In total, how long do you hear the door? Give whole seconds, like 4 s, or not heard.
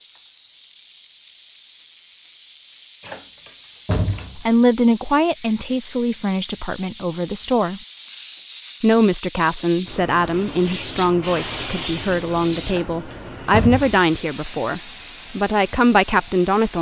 3 s.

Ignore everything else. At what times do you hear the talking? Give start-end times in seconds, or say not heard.
4.3-7.8, 8.8-16.7.